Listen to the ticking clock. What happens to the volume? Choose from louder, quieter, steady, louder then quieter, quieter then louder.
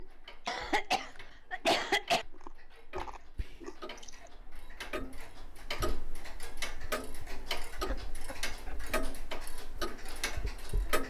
louder.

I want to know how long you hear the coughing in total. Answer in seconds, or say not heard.
3 s.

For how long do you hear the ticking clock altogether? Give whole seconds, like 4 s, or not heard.
11 s.